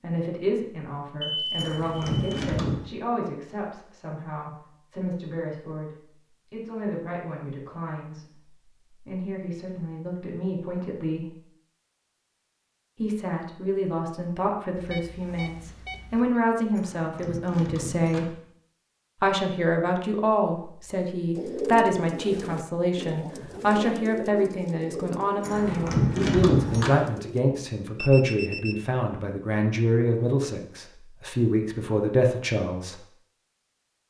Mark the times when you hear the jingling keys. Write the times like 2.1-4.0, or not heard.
1.6-2.9, 16.8-18.3, 25.4-27.0.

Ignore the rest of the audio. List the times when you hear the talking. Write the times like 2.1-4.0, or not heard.
0.0-11.3, 12.9-18.3, 19.2-33.0.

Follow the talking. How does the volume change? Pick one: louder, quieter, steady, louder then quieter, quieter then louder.
louder.